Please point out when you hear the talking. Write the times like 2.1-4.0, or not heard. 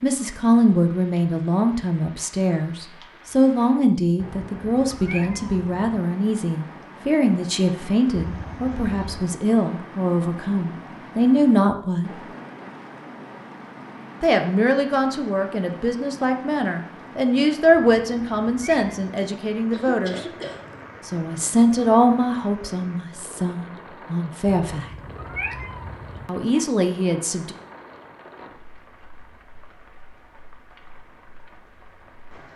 0.0-12.1, 14.2-20.2, 21.1-24.9, 26.2-27.6.